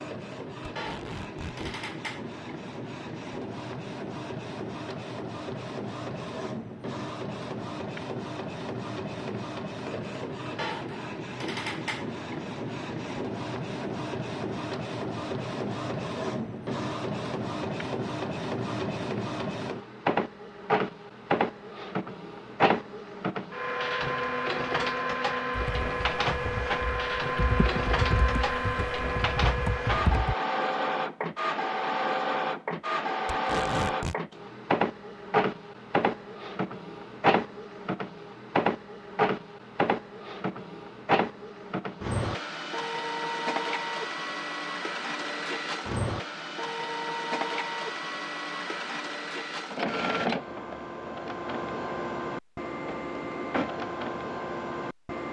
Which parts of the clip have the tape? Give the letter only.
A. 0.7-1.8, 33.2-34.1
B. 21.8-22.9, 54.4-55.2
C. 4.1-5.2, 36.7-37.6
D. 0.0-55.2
A.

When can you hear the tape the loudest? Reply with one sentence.
The volume of the tape peaks at 34 seconds.